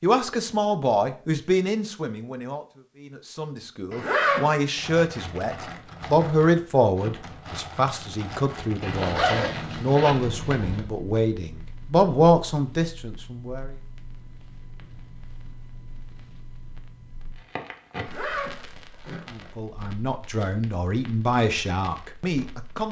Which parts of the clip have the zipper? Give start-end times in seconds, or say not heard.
3.9-4.7, 8.8-10.8, 18.0-19.5.